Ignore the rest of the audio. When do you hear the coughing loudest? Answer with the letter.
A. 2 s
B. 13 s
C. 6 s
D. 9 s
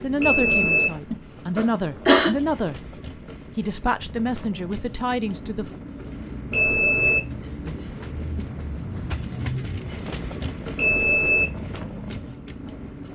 A.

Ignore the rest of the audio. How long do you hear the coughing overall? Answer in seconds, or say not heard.
2 s.